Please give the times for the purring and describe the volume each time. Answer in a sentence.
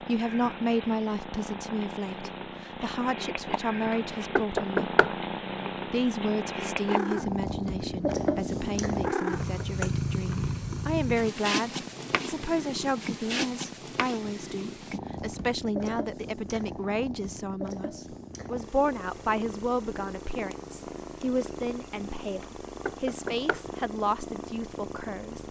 You can hear the purring from 0.0 to 25.4 s, getting louder then quieter.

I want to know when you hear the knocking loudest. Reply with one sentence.
The volume of the knocking peaks at 5 seconds.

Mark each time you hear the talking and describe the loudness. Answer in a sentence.
You can hear the talking from 0.0 to 5.0 s, getting quieter then louder; and from 5.9 to 25.4 s, at a steady volume.